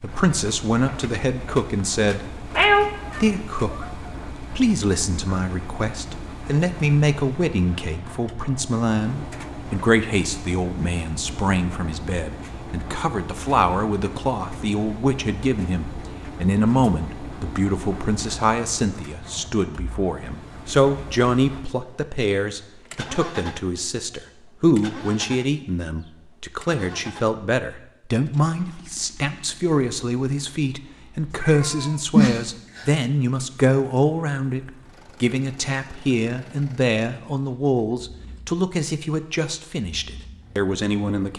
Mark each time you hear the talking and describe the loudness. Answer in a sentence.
You can hear the talking briefly from 0.0 to 2.3 s; and from 3.1 to 41.3 s, at a steady volume.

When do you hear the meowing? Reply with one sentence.
The meowing can be heard from 2.5 to 3.9 s and from 31.3 to 32.9 s.